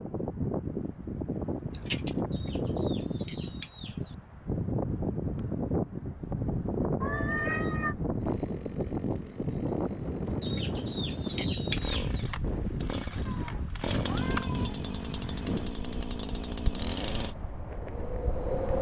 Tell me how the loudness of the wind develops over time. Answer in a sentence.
The volume of the wind goes down.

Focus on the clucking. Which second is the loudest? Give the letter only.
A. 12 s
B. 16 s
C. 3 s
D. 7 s
A.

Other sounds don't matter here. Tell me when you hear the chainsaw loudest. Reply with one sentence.
The volume of the chainsaw peaks at 14 seconds.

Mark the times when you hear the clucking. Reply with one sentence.
You can hear the clucking from 2.3 to 4.2 s and from 10.4 to 12.2 s.